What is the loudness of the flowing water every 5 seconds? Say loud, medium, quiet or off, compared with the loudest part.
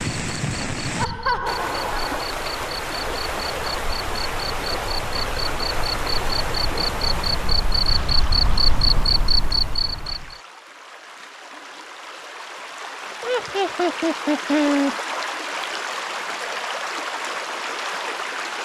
loud, loud, medium, loud.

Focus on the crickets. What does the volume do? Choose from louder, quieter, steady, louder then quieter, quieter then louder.
louder.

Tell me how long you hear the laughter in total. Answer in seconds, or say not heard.
3 s.